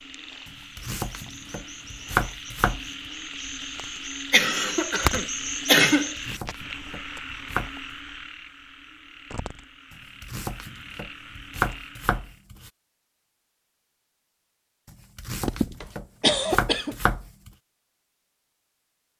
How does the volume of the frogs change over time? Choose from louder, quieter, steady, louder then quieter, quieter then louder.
louder then quieter.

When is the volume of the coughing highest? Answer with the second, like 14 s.
6 s.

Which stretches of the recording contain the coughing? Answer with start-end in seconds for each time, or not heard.
4.3-6.2, 15.4-16.9.